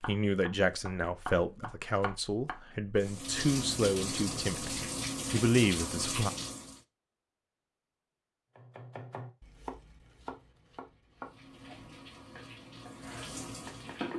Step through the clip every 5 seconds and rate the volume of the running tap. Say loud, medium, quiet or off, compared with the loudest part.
loud, loud, medium.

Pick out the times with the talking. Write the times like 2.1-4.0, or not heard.
0.1-6.3.